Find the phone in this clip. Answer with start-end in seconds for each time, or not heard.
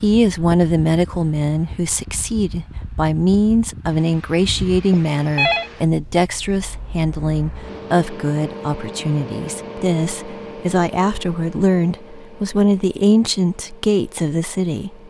4.9-5.7.